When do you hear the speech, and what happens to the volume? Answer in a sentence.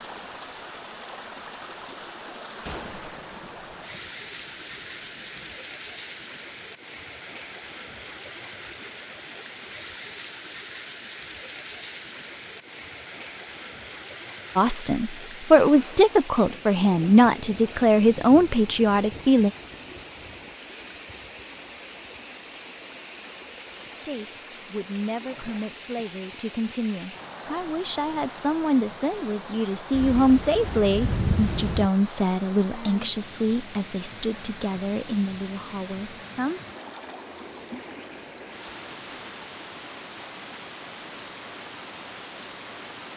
You can hear the speech from 14.6 to 19.5 s, at a steady volume; and from 23.9 to 36.6 s, getting louder then quieter.